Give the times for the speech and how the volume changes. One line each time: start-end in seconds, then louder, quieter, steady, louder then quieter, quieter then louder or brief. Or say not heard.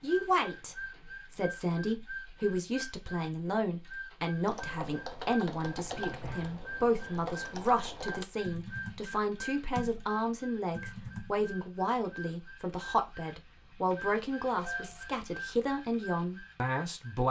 0.0-17.2 steady.